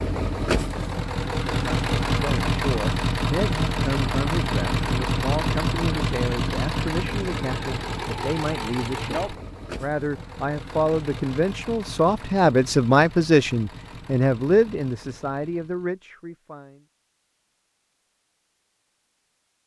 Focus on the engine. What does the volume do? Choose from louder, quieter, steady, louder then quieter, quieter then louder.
quieter.